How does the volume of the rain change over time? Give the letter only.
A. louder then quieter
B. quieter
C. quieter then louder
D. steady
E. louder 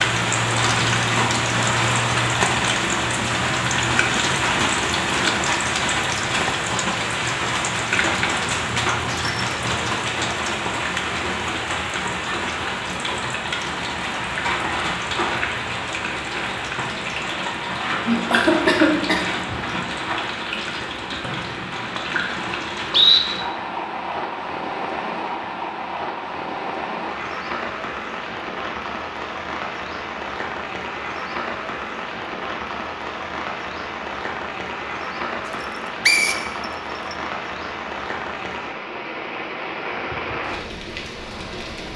B.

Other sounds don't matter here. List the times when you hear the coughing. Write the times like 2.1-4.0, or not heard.
18.1-19.6.